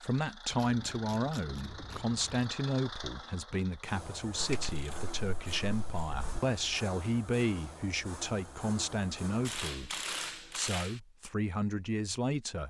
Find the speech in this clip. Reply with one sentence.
You can hear the speech from 0.0 to 12.6 s.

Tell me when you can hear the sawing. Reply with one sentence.
The sawing can't be heard in this clip.